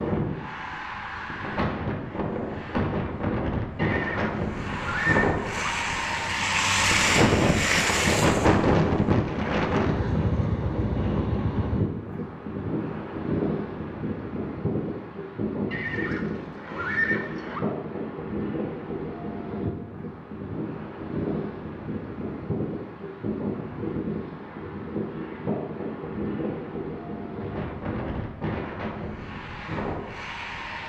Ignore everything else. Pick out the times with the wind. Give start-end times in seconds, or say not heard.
0.0-30.8.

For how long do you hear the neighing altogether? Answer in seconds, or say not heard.
4 s.